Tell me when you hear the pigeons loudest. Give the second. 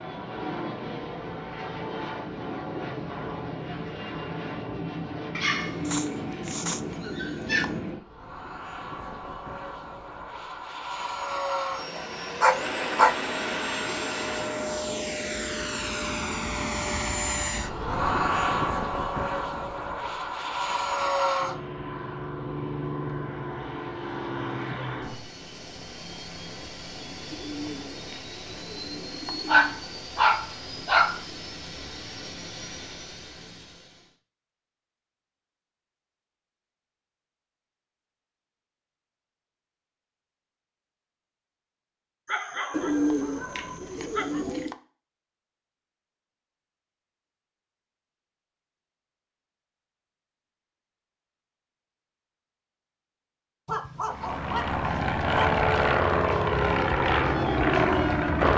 43 s.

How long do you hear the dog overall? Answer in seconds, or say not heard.
9 s.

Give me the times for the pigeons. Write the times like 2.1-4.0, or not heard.
5.7-7.8, 27.3-29.8, 42.7-44.8.